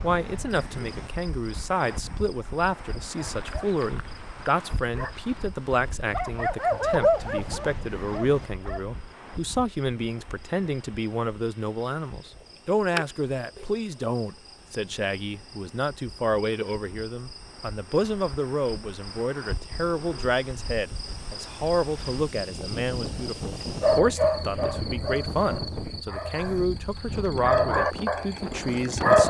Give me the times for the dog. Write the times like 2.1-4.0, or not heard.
3.3-8.8, 23.8-29.2.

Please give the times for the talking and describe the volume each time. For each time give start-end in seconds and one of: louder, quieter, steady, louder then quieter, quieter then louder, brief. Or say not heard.
0.0-29.2 steady.